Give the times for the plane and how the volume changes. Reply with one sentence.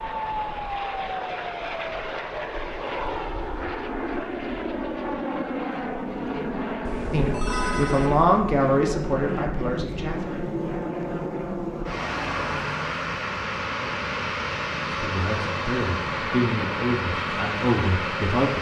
The plane can be heard from 0.0 to 18.5 s, at a steady volume.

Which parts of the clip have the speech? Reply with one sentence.
The speech can be heard from 7.1 to 10.3 s and from 14.9 to 18.5 s.